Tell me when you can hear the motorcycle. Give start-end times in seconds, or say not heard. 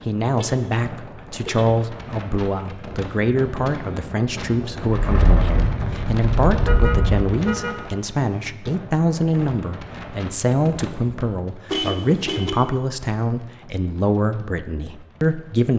4.8-7.2.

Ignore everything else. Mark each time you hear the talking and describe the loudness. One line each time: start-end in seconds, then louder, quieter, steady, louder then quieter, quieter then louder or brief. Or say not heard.
0.1-15.7 steady.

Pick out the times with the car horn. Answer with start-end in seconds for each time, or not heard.
0.3-1.8, 6.7-7.8, 11.7-12.6.